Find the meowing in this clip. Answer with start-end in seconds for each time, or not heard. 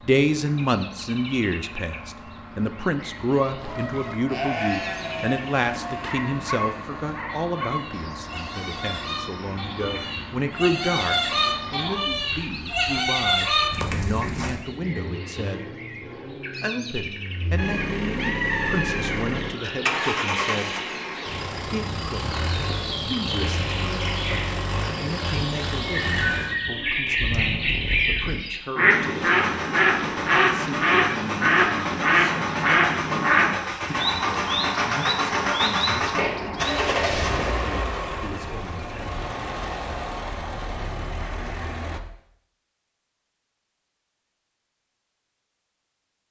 not heard.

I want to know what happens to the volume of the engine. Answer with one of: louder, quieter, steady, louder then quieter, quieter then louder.
louder.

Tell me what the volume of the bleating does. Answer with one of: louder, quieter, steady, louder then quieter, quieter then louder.
quieter then louder.